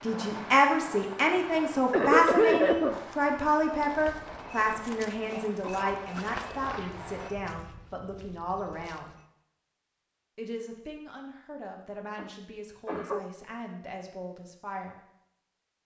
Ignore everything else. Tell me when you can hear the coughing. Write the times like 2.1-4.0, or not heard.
1.9-3.0, 5.3-6.0, 12.2-13.2.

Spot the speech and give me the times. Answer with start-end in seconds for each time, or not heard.
0.0-9.2, 10.3-14.9.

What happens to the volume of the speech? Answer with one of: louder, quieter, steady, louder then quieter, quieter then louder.
quieter.